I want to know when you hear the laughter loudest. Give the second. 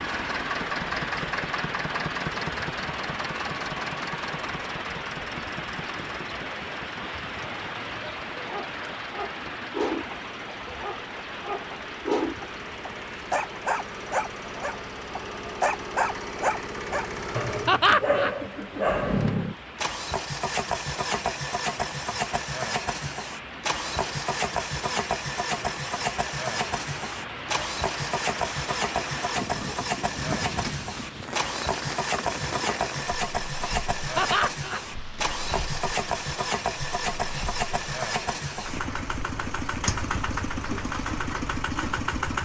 18 s.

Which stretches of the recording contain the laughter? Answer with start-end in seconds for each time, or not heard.
17.6-18.4, 34.1-34.8.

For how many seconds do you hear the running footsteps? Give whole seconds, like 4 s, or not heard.
not heard.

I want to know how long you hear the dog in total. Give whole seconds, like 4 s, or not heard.
11 s.